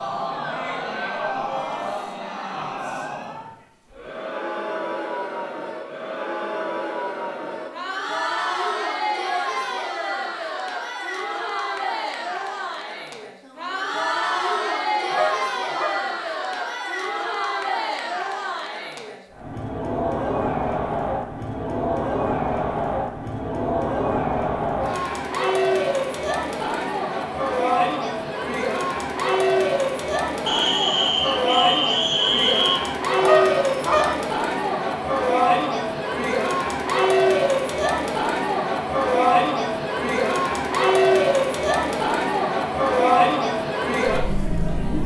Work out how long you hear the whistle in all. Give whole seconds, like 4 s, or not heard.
2 s.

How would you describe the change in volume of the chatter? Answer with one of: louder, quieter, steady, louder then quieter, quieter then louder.
louder.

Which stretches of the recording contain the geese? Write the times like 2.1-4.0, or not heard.
15.1-16.1, 33.2-34.1.